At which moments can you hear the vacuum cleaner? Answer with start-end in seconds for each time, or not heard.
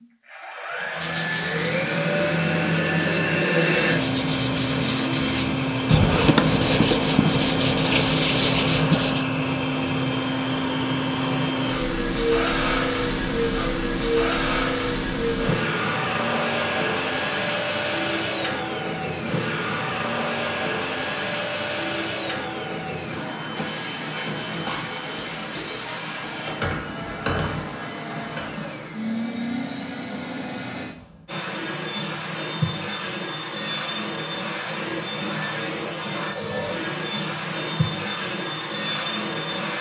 0.0-39.7.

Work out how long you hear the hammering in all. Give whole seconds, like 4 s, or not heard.
not heard.